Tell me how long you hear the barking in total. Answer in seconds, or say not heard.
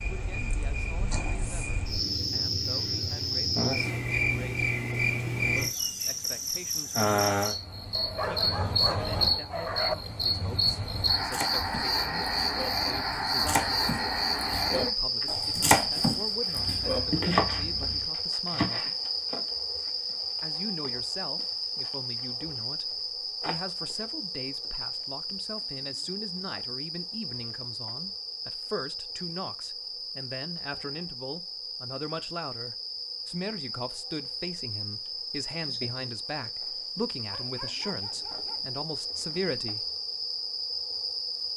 6 s.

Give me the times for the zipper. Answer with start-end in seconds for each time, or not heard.
not heard.